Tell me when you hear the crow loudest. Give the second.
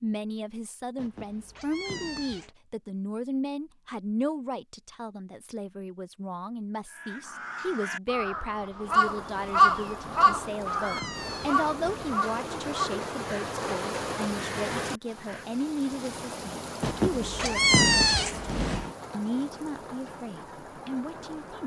10 s.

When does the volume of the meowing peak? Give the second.
18 s.